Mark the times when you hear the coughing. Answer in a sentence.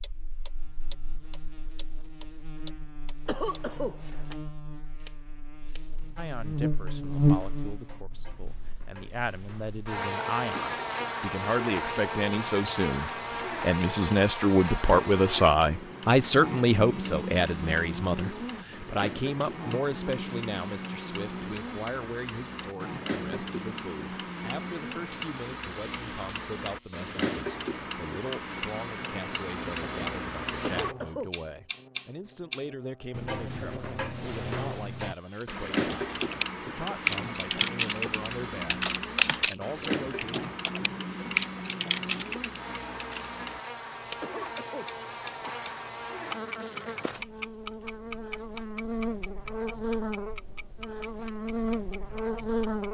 The coughing can be heard from 3.2 to 4.3 s, from 30.6 to 31.3 s and from 44.2 to 45.9 s.